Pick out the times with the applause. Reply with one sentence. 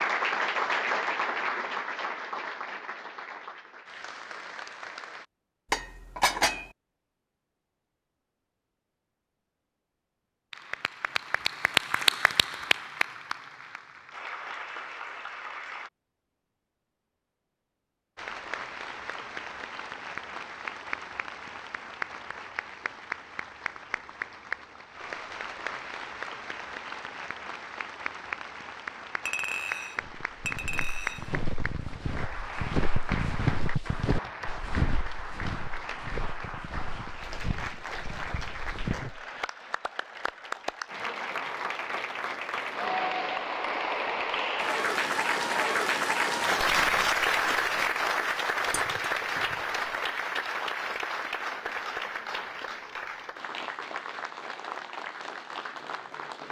The applause can be heard from 0.0 to 5.2 s, from 10.5 to 15.9 s and from 18.1 to 56.4 s.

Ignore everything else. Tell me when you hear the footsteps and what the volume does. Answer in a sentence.
You can hear the footsteps from 29.9 to 39.2 s, getting louder then quieter.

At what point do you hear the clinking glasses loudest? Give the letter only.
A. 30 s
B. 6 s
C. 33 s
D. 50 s
B.